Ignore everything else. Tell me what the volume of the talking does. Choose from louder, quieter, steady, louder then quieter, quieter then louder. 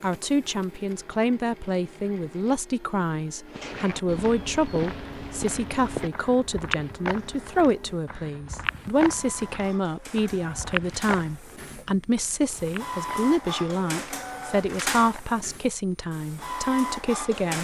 steady.